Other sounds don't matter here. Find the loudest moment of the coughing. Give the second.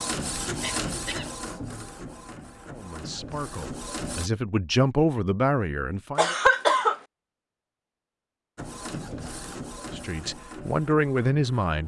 7 s.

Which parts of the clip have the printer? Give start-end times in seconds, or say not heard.
0.0-4.3, 8.6-11.8.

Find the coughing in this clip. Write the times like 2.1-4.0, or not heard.
0.6-1.3, 6.2-7.0.